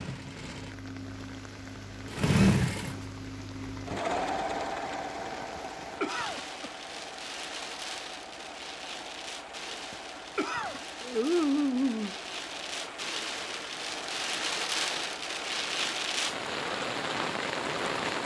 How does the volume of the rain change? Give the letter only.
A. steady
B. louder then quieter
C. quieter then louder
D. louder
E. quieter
D.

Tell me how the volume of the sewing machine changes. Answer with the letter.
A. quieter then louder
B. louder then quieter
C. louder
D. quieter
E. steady
D.